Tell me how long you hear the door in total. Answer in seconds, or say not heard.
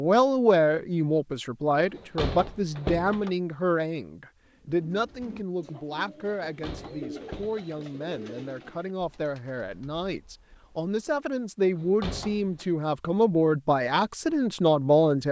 4 s.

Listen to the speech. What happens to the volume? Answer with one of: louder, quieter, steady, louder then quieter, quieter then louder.
quieter then louder.